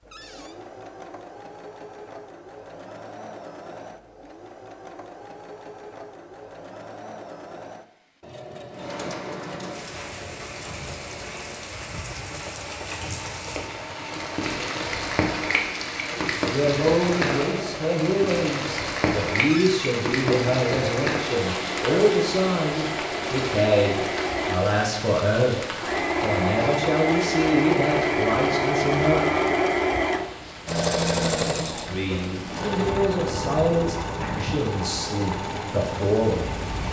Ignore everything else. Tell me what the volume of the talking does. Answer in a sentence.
The loudness of the talking stays about the same.